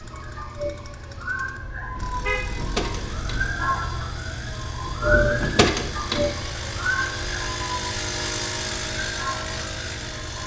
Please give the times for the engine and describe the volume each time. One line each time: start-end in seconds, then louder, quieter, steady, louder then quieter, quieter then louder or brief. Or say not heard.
0.0-10.4 louder.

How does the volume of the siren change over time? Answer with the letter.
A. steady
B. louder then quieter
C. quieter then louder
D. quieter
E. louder
B.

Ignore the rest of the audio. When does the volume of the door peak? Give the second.
6 s.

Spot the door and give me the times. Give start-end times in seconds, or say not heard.
2.5-3.5, 5.4-6.3.